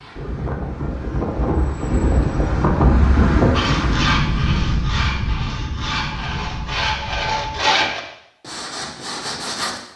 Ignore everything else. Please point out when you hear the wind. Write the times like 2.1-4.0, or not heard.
0.0-7.9.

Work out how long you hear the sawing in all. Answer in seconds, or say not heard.
6 s.